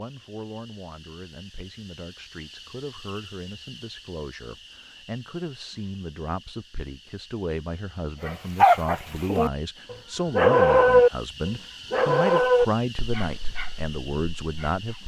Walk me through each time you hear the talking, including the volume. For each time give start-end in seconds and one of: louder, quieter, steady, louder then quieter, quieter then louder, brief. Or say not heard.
0.0-15.0 louder.